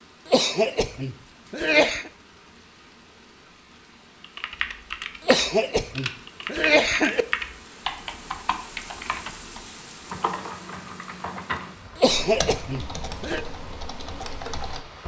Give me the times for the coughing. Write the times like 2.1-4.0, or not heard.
0.2-2.1, 5.2-7.2, 11.9-13.4.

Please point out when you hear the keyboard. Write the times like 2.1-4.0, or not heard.
4.2-14.8.